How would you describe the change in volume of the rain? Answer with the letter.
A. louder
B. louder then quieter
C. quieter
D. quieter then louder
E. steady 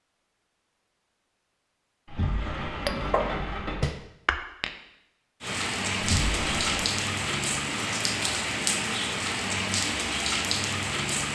E.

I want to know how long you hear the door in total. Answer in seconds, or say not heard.
3 s.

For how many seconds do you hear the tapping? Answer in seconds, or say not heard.
2 s.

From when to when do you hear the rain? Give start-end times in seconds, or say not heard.
5.4-11.3.